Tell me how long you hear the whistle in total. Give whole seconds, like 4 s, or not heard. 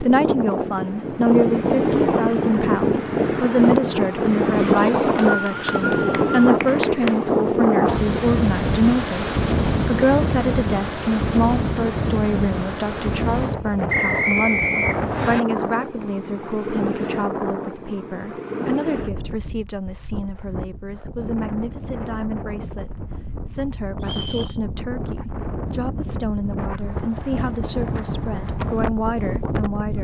4 s.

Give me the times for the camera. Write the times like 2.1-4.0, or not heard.
not heard.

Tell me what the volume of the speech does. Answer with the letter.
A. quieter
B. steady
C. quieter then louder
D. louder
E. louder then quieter
A.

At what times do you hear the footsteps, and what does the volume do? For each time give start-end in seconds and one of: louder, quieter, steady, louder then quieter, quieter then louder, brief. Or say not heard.
not heard.